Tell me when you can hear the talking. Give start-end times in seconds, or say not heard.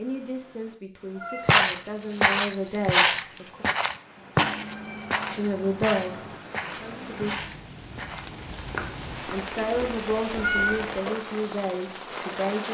0.0-3.6, 5.3-7.3, 9.3-12.7.